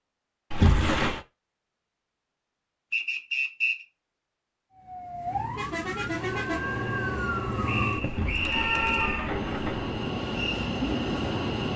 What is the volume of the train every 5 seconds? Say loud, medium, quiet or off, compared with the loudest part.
off, medium, loud.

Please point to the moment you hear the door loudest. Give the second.
1 s.